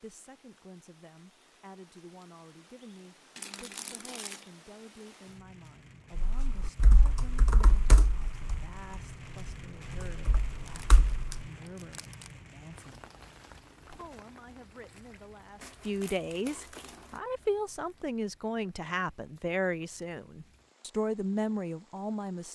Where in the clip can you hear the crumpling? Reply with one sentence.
The crumpling can be heard from 3.4 to 4.5 s, from 10.7 to 12.3 s and from 15.6 to 17.2 s.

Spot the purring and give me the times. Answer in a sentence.
You can't hear the purring here.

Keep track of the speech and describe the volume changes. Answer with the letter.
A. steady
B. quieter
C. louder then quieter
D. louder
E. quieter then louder
D.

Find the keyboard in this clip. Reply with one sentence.
The keyboard can be heard from 6.2 to 11.4 s.